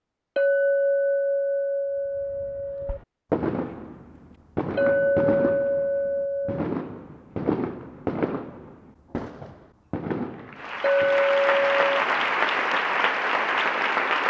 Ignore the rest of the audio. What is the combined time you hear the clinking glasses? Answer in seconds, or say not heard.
6 s.